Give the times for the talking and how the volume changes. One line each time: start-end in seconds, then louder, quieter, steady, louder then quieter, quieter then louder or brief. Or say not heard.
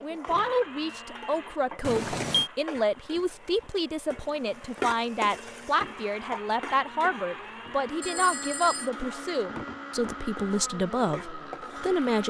0.0-12.2 steady.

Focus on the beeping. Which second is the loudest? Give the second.
2 s.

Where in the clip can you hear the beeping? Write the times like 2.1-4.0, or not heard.
1.8-2.5, 8.0-8.9.